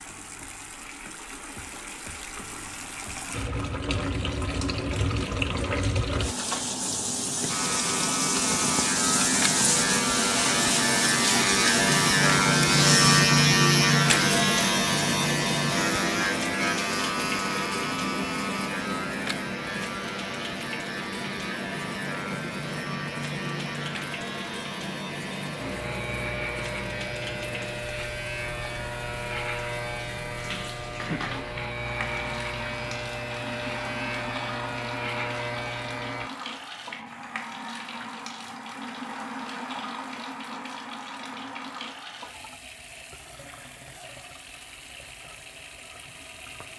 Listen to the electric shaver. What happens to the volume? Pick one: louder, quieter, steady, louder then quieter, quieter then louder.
quieter.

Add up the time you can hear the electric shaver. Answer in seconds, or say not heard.
29 s.